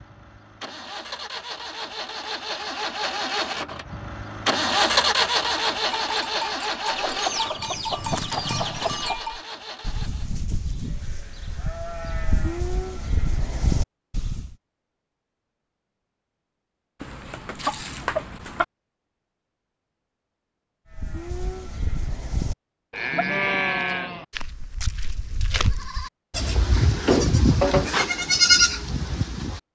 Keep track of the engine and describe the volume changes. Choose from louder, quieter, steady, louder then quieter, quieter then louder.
louder then quieter.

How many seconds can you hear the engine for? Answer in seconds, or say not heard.
10 s.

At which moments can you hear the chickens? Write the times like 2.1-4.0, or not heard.
7.0-9.2, 17.0-18.6.